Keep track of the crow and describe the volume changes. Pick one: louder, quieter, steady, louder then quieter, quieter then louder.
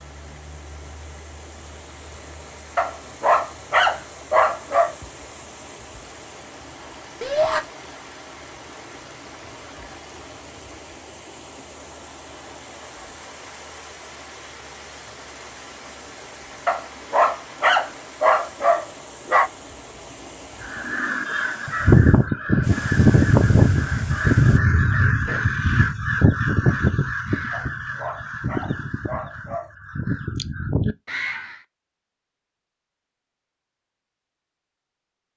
quieter.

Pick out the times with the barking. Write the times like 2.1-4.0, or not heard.
2.8-5.0, 16.6-19.5, 27.5-29.7.